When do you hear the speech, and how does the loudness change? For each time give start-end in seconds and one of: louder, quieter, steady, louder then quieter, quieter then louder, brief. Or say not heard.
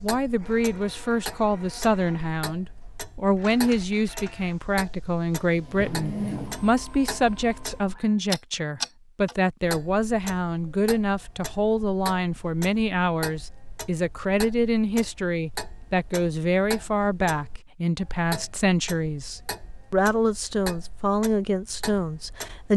0.0-22.7 steady.